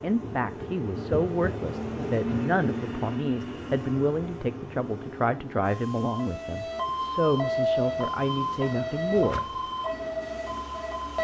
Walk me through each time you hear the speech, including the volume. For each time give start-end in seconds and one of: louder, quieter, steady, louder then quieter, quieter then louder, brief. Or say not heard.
0.0-9.4 steady.